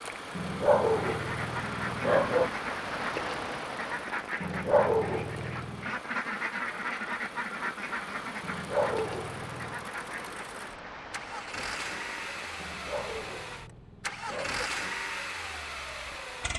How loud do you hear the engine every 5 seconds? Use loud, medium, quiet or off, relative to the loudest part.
medium, medium, loud, loud.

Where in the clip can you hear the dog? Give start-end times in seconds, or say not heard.
0.3-2.5, 4.4-5.9, 8.4-9.8, 12.6-14.7.